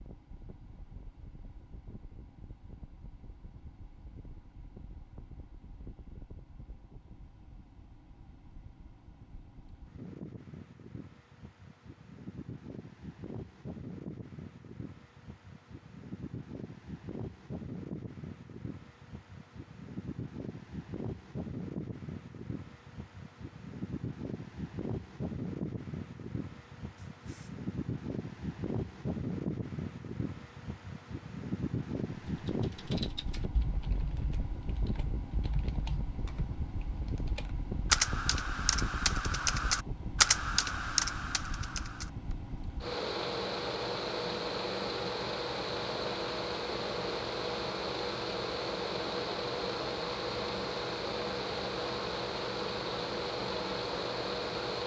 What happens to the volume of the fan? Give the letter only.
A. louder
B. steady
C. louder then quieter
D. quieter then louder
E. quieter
A.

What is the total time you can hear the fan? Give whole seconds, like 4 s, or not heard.
55 s.